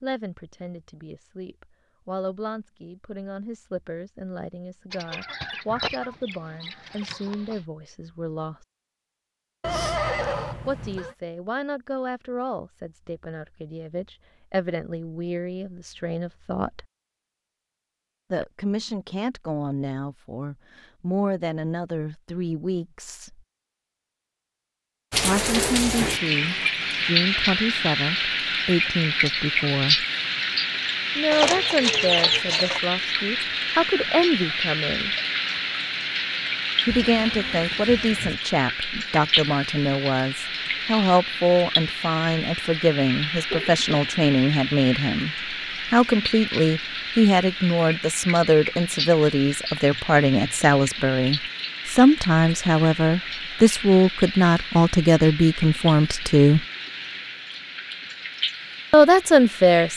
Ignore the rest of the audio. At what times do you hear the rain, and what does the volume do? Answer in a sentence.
The rain can be heard from 25.1 to 59.9 s, getting quieter.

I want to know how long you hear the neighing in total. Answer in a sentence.
The neighing can be heard for 3 seconds in total.